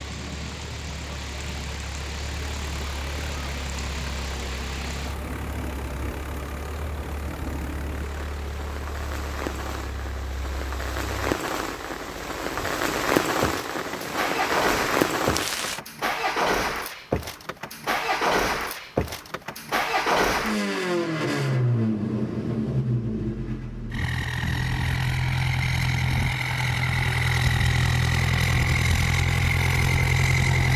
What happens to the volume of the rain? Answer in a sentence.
The loudness of the rain goes up.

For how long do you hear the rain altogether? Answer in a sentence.
You can hear the rain for 16 seconds altogether.